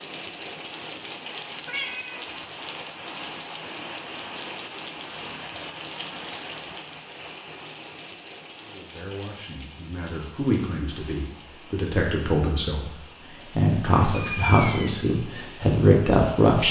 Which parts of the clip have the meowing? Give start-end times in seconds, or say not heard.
1.6-2.2, 14.1-15.1.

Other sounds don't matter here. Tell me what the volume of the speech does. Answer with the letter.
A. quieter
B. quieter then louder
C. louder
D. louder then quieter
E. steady
C.